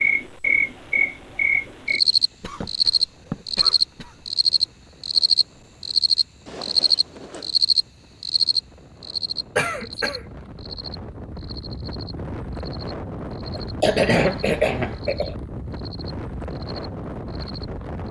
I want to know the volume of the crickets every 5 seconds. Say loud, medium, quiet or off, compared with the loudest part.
loud, loud, quiet, quiet.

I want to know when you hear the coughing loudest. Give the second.
14 s.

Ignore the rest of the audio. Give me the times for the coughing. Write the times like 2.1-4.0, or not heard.
2.4-4.2, 9.6-10.2, 13.5-15.3.